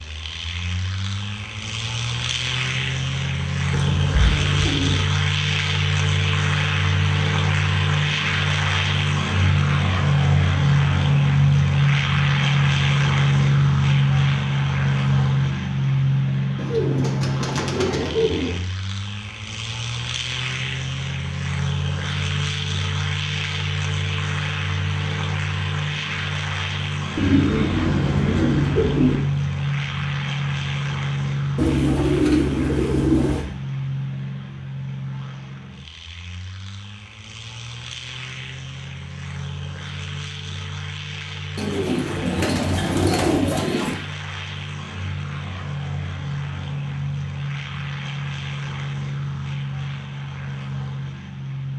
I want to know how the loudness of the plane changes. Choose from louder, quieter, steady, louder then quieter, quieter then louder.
quieter.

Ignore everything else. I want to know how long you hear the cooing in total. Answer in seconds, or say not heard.
10 s.